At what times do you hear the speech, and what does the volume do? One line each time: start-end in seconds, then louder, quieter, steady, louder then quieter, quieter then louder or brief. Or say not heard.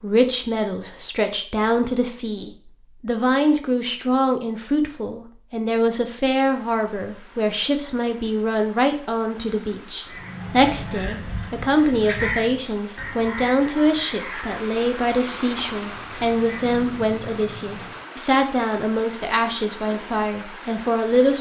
0.0-21.3 steady.